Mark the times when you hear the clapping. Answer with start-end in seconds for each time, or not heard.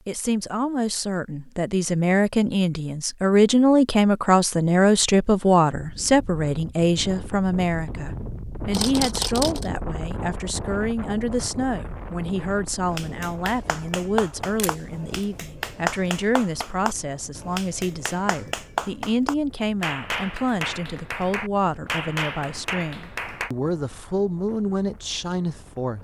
12.8-23.5.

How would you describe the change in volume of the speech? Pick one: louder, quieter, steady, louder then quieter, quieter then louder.
quieter.